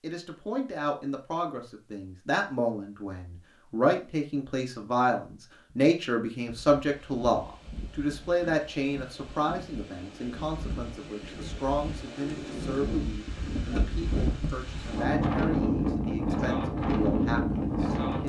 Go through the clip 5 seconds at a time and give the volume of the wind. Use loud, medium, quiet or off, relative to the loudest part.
off, quiet, medium, loud.